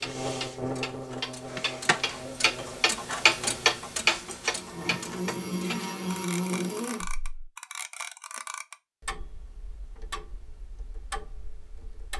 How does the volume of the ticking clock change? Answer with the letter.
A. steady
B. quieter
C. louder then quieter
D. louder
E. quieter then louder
C.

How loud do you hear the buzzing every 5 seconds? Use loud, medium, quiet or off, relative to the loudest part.
medium, loud, off.